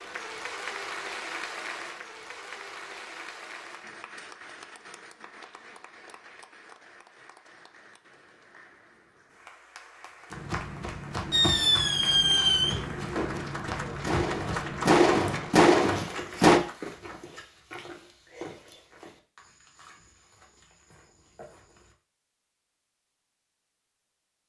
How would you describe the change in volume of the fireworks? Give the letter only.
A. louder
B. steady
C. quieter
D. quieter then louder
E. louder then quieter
D.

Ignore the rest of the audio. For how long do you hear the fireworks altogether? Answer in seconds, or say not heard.
5 s.